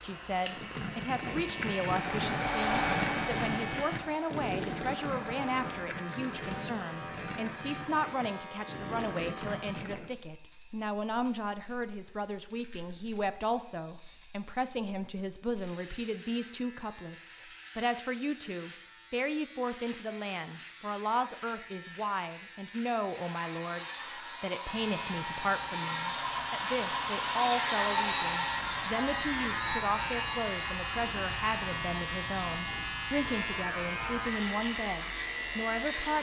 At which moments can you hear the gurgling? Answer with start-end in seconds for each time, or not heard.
0.5-10.1.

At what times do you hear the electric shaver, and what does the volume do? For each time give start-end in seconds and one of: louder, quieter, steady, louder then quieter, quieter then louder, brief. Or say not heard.
0.2-36.1 quieter then louder.